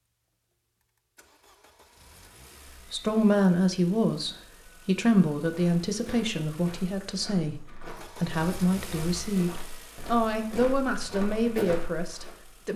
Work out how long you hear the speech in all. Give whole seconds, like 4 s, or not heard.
9 s.